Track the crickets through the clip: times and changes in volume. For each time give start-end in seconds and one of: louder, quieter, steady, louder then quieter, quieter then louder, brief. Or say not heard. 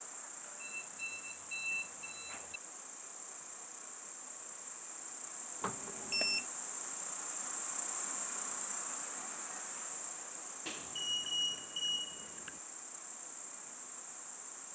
0.0-14.7 louder then quieter.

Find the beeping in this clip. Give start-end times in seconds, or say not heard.
0.6-2.6, 5.6-6.5, 10.7-12.5.